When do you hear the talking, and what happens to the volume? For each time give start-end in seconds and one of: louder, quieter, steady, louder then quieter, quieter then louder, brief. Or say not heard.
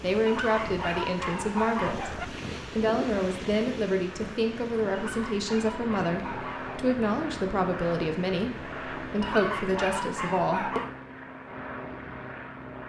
0.0-10.8 steady.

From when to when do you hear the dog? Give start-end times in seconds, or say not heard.
0.2-2.2, 4.9-7.0, 9.2-10.9.